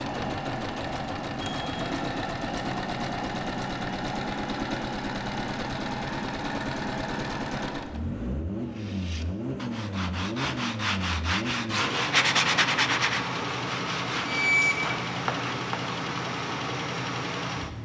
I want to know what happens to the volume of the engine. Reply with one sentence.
The loudness of the engine stays about the same.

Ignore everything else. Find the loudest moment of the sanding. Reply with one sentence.
The loudest moment of the sanding is at 12 seconds.